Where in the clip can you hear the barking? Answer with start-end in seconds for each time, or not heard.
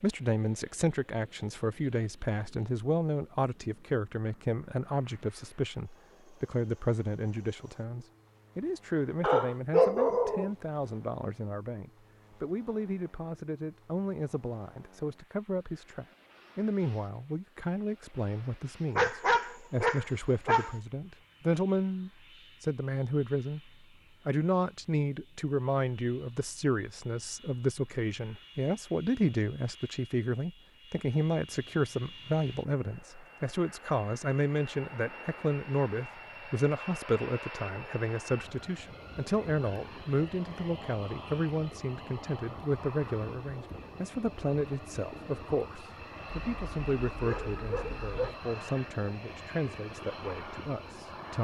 9.2-10.5, 18.9-20.8, 46.3-48.4.